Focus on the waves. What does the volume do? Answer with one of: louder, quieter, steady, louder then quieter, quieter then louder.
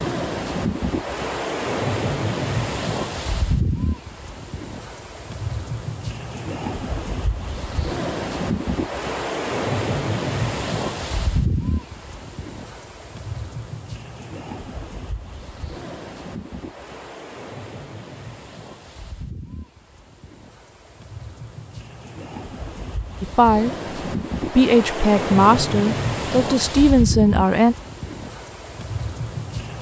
quieter then louder.